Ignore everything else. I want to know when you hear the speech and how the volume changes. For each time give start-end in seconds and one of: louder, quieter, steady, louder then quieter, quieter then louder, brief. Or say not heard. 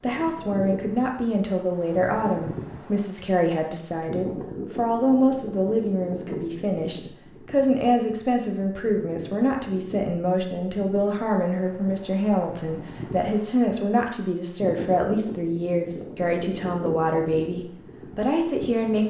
0.0-19.0 steady.